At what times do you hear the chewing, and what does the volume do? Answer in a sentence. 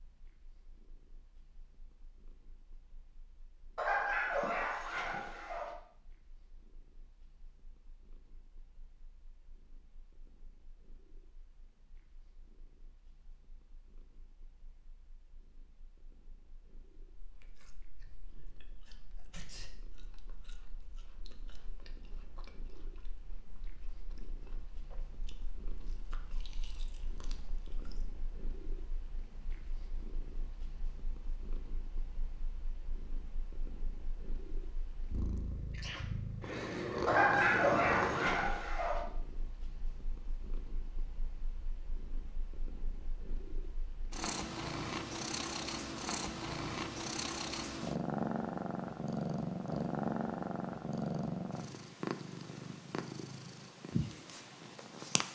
The chewing can be heard from 17.1 to 28.1 s, getting louder.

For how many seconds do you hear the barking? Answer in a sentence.
You can hear the barking for 4 seconds altogether.